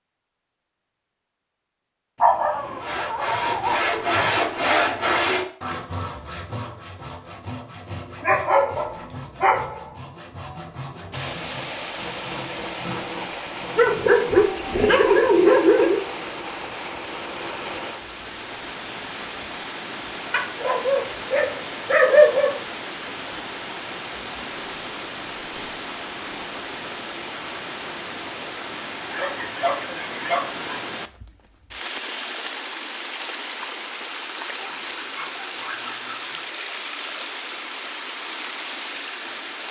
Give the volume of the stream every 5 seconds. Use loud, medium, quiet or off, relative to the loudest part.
off, off, loud, loud, loud, loud, loud, loud.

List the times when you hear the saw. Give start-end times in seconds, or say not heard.
2.6-14.3.